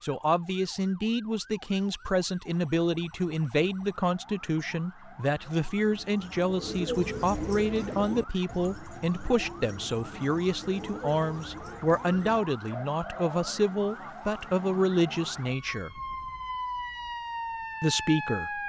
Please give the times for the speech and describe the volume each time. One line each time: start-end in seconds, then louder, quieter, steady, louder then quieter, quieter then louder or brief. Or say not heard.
0.0-15.9 steady
17.8-18.6 brief.